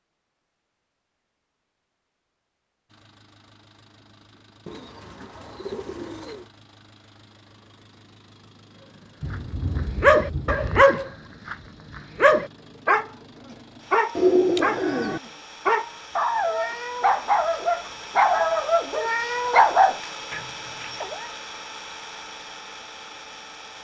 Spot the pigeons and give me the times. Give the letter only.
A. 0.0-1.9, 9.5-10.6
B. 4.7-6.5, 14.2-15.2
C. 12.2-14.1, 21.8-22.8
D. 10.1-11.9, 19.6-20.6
B.